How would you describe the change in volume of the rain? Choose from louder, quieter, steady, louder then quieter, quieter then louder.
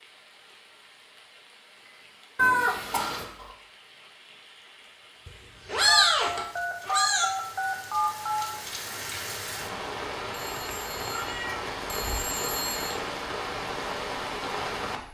louder.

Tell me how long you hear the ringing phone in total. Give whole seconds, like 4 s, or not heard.
6 s.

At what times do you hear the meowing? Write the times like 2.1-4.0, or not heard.
2.4-3.2, 5.2-7.2, 10.7-12.2.